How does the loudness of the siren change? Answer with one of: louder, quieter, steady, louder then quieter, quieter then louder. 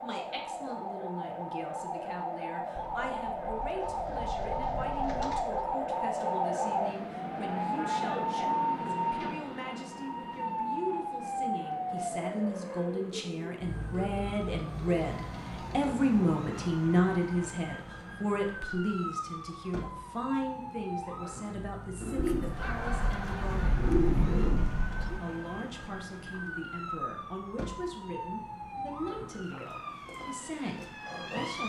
quieter.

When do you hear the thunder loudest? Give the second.
24 s.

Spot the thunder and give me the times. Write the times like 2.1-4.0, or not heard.
2.8-5.8, 22.2-25.2.